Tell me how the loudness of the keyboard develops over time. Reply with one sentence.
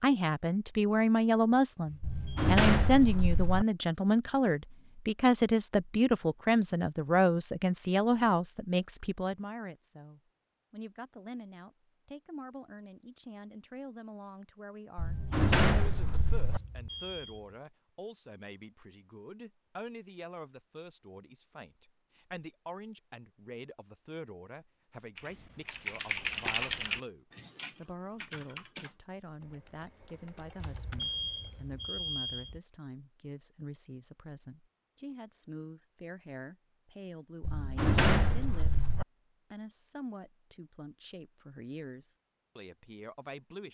The loudness of the keyboard goes down, then up.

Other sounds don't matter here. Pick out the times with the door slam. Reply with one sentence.
You can hear the door slam from 2.0 to 3.6 s, from 14.9 to 16.6 s and from 37.4 to 39.0 s.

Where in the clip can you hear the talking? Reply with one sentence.
The talking can be heard from 0.0 to 43.6 s.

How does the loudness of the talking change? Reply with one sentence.
The loudness of the talking goes down.